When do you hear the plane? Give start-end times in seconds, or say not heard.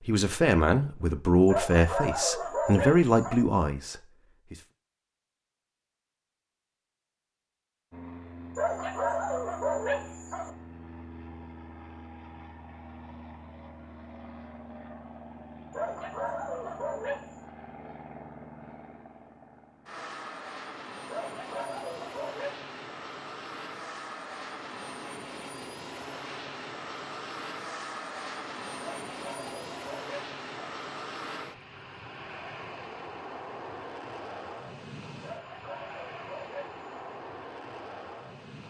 7.9-38.6.